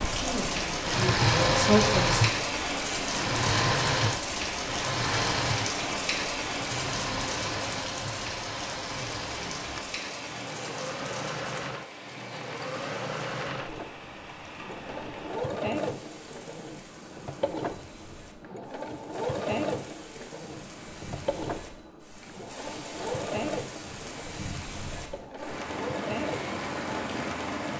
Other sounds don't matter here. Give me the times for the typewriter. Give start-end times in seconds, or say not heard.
not heard.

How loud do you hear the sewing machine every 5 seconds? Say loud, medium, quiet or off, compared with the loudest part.
loud, medium, medium, medium, medium, medium.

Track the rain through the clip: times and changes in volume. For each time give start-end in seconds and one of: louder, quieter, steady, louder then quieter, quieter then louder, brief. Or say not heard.
0.0-27.7 quieter then louder.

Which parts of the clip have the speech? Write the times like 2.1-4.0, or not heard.
0.1-2.2.